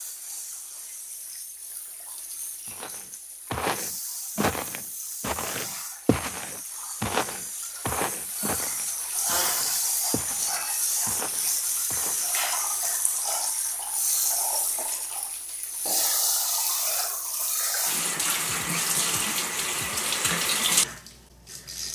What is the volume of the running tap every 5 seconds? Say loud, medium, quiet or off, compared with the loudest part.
quiet, medium, loud, loud, loud.